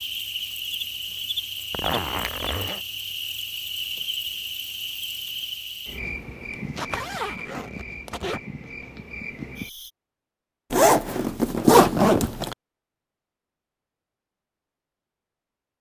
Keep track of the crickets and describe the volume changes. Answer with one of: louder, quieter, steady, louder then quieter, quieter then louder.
quieter.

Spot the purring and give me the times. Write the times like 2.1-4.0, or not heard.
not heard.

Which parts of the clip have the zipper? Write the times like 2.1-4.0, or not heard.
1.7-2.8, 6.5-8.4, 10.7-12.6.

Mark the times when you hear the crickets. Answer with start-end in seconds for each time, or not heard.
0.0-9.9.